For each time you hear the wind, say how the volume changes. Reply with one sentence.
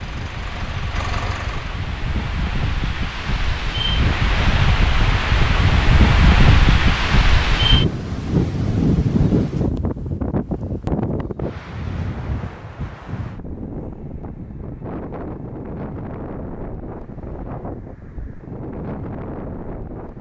You can hear the wind from 0.0 to 20.1 s, getting louder then quieter.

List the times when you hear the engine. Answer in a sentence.
The engine can be heard from 0.0 to 1.8 s.